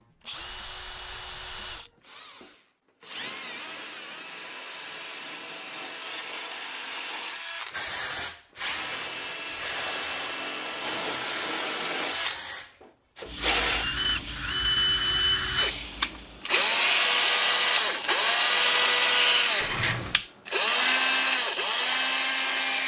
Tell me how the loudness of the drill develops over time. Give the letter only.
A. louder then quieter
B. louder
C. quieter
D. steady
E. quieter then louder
B.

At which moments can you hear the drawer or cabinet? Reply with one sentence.
The drawer or cabinet can be heard from 19.6 to 20.2 s.